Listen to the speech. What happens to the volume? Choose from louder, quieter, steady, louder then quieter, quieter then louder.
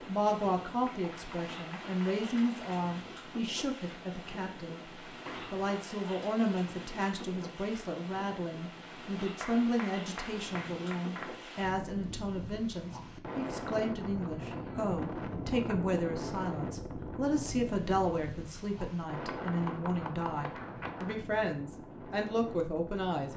steady.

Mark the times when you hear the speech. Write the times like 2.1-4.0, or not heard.
0.1-4.8, 5.5-23.3.